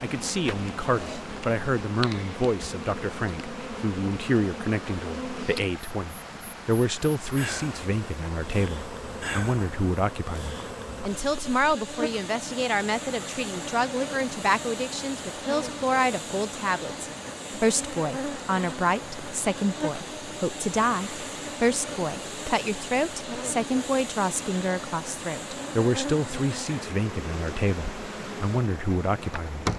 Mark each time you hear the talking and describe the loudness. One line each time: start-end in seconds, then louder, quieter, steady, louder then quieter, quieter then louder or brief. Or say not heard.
0.0-29.7 steady.